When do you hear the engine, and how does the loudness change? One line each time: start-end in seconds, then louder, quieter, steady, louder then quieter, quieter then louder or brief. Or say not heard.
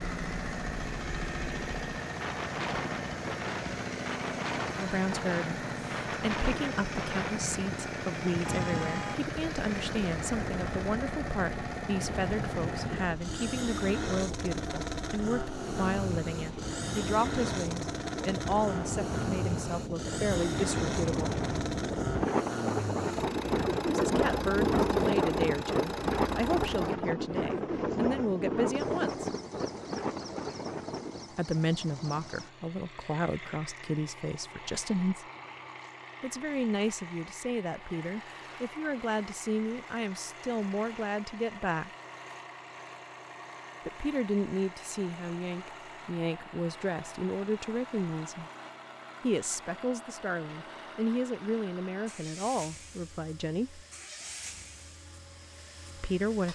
0.0-56.5 quieter.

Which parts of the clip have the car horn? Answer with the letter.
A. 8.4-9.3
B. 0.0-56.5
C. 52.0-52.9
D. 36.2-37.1
A.